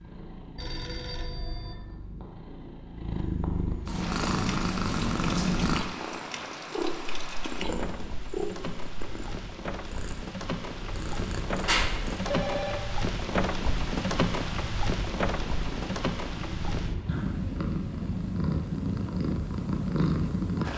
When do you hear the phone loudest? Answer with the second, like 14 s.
12 s.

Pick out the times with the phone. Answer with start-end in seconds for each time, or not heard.
0.6-1.8, 11.6-12.8.